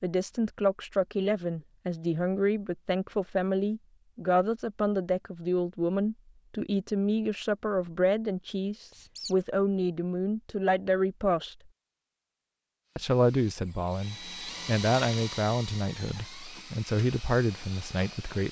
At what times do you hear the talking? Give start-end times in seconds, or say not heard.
0.0-11.6, 12.9-18.4.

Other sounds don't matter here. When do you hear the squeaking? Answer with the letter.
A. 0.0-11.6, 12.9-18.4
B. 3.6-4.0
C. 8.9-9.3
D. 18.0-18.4
C.